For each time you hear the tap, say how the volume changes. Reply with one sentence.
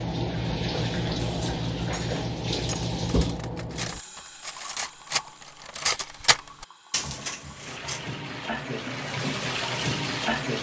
You can hear the tap from 0.0 to 10.5 s, getting quieter then louder.